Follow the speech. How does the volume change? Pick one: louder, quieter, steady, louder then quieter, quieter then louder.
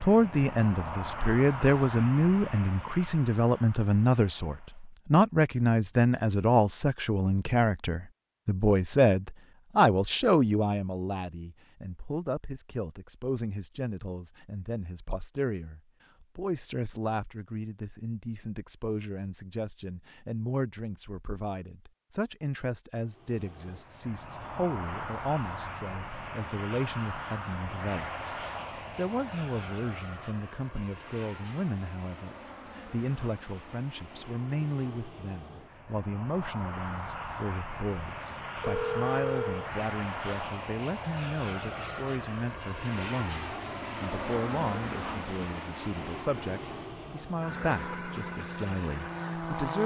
quieter.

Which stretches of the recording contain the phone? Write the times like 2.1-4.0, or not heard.
38.6-39.7.